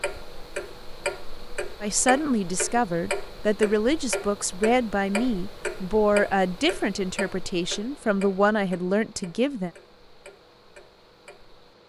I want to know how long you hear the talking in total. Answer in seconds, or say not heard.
8 s.